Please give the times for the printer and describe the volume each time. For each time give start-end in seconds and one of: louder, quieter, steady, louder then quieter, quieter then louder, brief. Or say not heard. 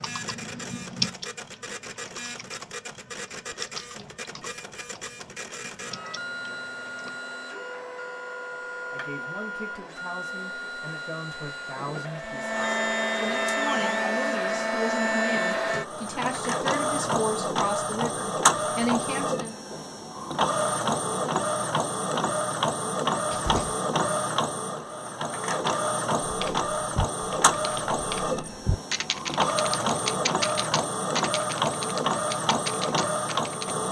0.0-33.8 louder.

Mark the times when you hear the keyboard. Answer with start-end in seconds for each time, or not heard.
0.0-7.1, 26.2-33.8.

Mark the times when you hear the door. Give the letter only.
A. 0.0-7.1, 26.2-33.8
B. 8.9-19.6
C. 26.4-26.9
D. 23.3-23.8
D.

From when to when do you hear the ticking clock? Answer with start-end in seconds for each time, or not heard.
not heard.